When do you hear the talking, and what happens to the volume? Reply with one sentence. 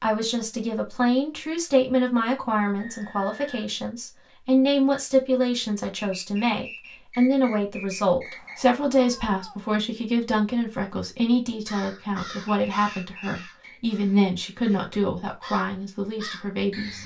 The talking can be heard from 0.0 to 17.0 s, at a steady volume.